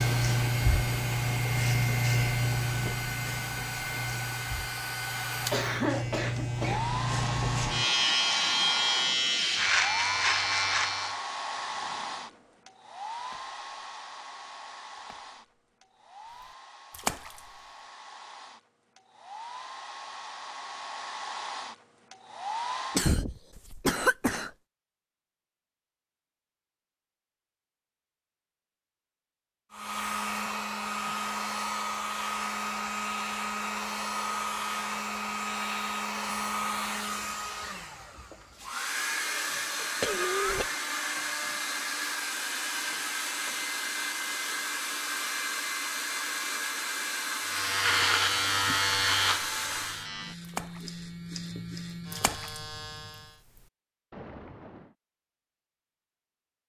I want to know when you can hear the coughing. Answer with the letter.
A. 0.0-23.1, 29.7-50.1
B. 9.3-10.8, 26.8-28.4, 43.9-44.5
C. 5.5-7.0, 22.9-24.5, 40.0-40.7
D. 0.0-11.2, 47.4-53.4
C.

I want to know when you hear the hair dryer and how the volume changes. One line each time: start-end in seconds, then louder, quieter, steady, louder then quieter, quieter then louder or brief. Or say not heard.
0.0-23.1 quieter then louder
29.7-50.1 steady.